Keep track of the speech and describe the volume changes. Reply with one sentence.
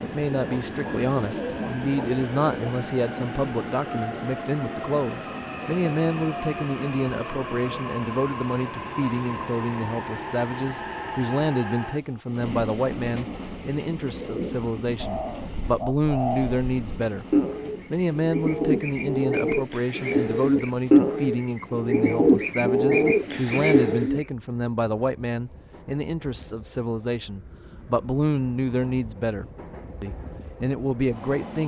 The volume of the speech stays about the same.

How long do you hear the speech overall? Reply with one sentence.
The speech can be heard for 31 seconds in total.